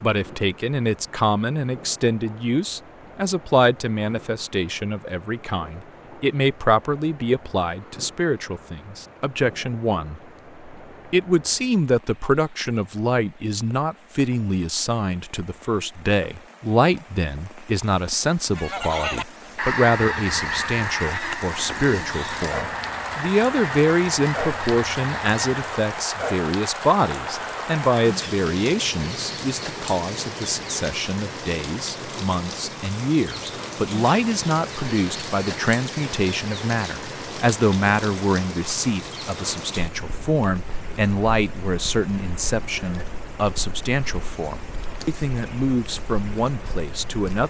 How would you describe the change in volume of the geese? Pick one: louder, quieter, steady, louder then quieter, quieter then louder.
quieter.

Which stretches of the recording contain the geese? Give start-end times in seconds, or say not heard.
18.6-25.6.